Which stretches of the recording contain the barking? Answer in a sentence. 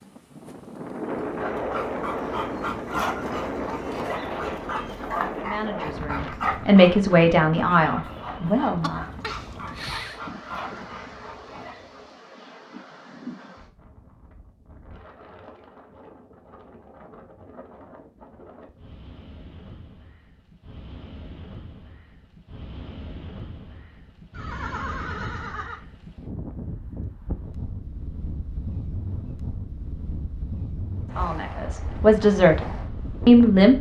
The barking can be heard from 1.2 to 12.1 s.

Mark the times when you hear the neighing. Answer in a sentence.
The neighing can be heard from 8.8 to 10.2 s and from 24.3 to 25.9 s.